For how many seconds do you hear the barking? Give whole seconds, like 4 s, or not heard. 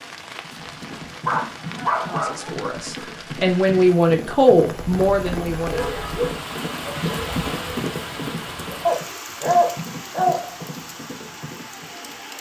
5 s.